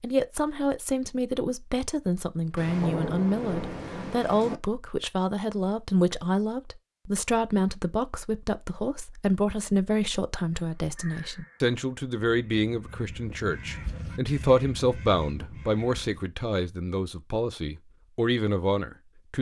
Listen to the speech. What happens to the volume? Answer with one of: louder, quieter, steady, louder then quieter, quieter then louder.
steady.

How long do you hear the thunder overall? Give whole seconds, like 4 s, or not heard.
2 s.